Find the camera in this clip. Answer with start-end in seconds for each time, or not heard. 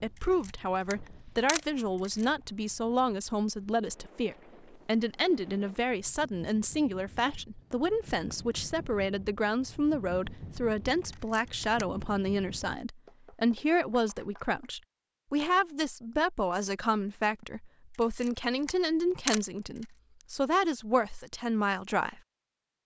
0.1-2.3, 11.1-11.8, 18.0-19.9.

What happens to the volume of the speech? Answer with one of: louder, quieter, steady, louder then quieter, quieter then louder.
steady.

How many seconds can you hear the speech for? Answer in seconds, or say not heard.
22 s.